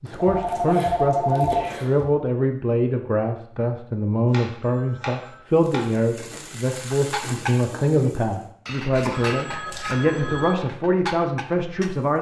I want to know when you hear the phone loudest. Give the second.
1 s.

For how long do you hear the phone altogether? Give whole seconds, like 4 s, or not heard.
4 s.